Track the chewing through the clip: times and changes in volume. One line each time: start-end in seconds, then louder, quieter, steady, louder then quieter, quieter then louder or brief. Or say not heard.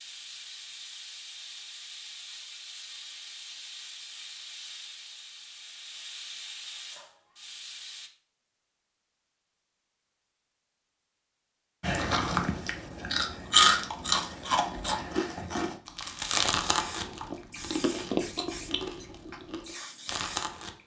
11.8-20.8 quieter.